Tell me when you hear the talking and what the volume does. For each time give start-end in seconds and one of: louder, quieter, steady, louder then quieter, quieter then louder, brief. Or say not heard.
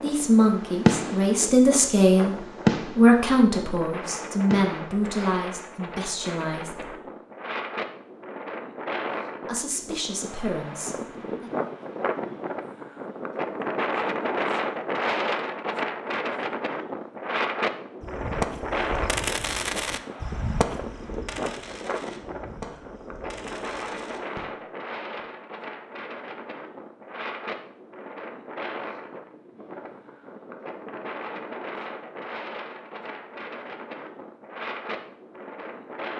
0.0-7.0 quieter
9.4-11.5 brief.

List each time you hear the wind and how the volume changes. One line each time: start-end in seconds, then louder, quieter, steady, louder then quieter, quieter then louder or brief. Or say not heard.
0.0-36.1 louder then quieter.